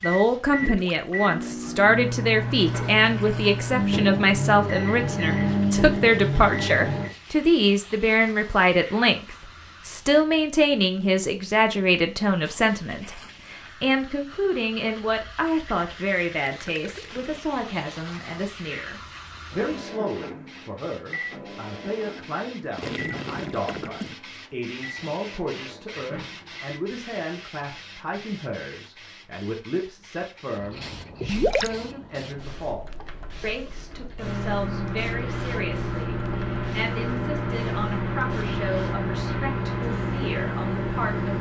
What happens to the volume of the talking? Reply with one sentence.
The volume of the talking goes down.